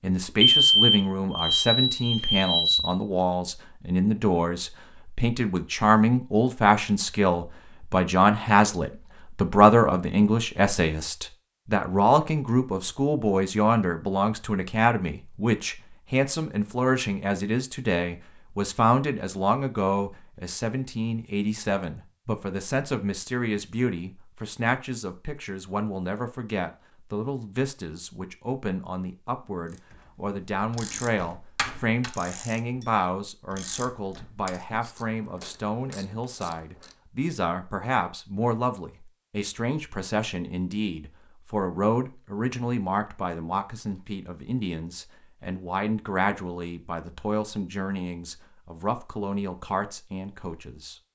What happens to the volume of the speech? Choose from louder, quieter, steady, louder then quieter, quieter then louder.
quieter.